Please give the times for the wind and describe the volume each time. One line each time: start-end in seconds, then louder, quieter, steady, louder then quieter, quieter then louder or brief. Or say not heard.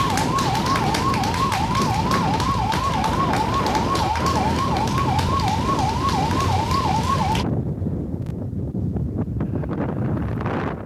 0.0-10.8 steady.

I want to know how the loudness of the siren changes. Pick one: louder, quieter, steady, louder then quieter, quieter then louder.
steady.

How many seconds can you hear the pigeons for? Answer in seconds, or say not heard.
not heard.